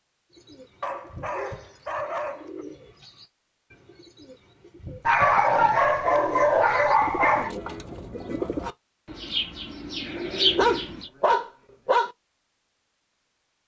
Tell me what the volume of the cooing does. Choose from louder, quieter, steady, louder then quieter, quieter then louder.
louder.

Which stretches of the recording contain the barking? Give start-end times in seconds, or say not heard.
0.8-2.6, 5.0-7.5, 10.2-12.1.